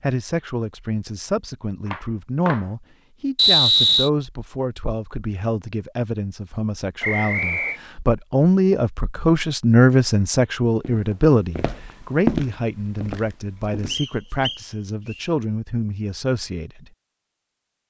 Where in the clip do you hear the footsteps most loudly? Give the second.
12 s.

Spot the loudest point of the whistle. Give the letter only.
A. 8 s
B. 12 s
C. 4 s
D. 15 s
C.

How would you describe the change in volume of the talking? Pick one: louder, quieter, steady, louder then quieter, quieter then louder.
louder then quieter.